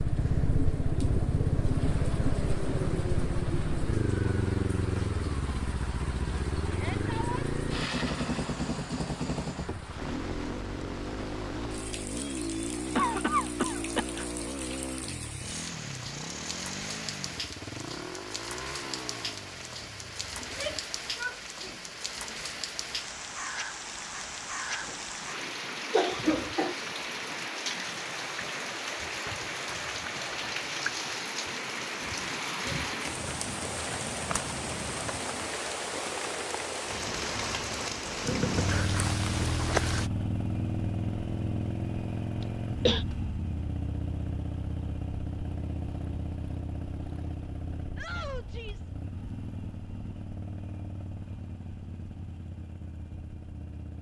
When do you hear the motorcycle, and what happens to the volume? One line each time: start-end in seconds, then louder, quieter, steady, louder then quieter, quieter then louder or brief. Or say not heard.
0.0-20.9 quieter
38.2-53.9 quieter.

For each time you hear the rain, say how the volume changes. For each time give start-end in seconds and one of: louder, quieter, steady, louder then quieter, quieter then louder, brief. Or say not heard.
0.0-40.1 louder.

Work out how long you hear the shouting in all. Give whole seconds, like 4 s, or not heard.
3 s.